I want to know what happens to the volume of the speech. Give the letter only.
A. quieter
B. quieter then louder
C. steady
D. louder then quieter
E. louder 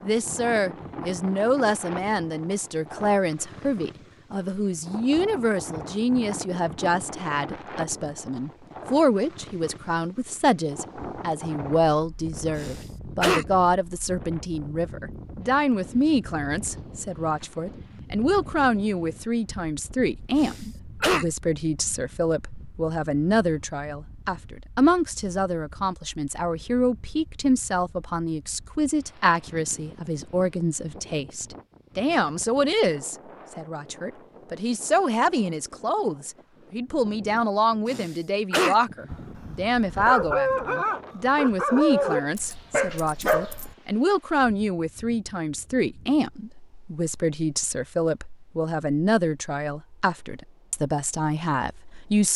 C.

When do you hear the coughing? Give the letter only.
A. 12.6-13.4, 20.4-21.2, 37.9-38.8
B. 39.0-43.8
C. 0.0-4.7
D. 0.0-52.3
A.